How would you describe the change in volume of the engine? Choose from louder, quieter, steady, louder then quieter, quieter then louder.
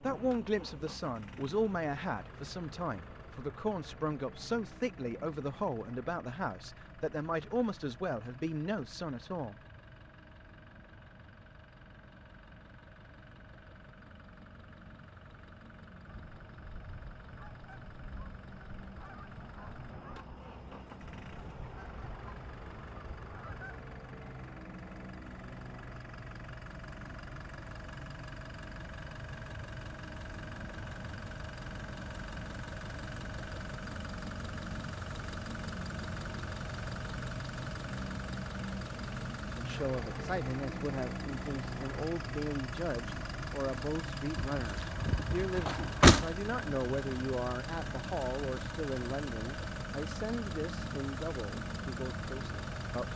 louder.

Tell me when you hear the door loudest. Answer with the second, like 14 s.
46 s.